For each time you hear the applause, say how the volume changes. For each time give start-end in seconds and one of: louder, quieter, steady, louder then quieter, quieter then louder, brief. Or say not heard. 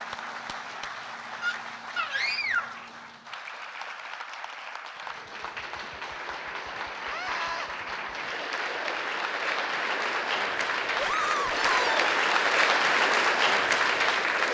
0.0-14.4 louder.